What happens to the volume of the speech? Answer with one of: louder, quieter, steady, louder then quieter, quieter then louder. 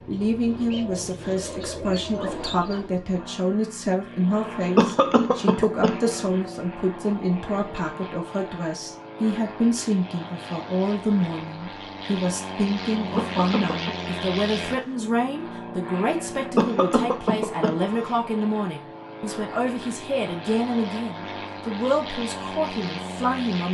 steady.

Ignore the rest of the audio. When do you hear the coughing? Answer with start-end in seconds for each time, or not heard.
4.8-6.2, 13.2-13.9, 16.6-18.1.